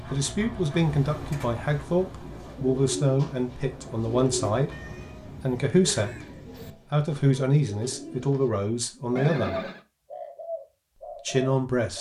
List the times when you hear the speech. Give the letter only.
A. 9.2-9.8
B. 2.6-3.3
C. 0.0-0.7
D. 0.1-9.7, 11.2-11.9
D.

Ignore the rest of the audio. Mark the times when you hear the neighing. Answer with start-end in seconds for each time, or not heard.
9.2-9.8.